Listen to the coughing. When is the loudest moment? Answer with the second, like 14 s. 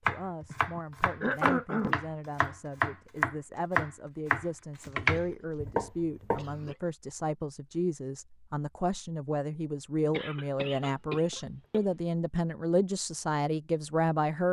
1 s.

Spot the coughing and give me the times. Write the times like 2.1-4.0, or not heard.
0.5-1.9, 5.0-6.9, 10.1-11.8.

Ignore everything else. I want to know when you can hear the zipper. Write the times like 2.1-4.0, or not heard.
not heard.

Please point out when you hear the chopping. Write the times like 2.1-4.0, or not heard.
0.1-6.6.